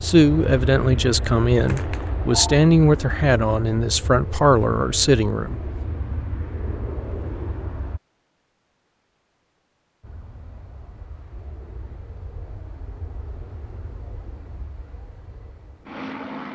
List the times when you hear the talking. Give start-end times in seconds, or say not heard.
0.0-5.6.